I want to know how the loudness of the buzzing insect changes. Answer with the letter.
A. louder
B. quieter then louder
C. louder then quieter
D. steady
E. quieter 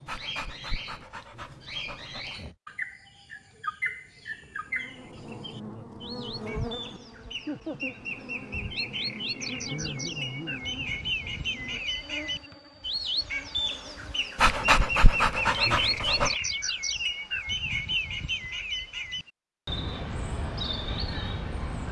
E.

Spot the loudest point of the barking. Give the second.
15 s.